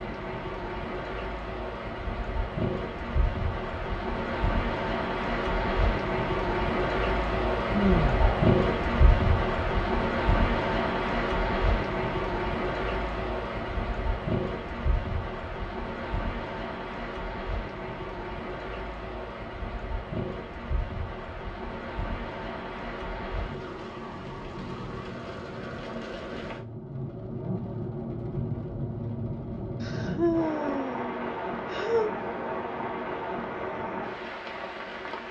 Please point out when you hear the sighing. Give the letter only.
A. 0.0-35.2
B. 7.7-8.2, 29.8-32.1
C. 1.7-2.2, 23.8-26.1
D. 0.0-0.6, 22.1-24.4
B.